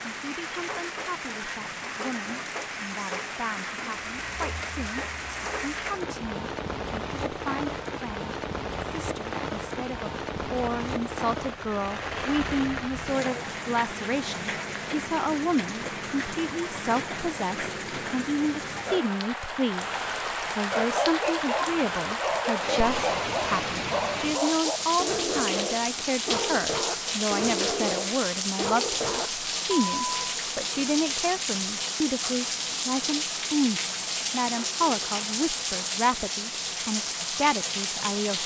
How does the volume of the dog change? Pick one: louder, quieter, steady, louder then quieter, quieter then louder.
steady.